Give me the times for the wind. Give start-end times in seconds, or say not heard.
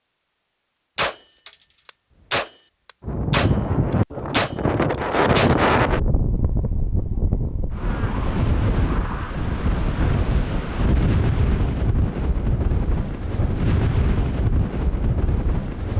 3.0-15.9.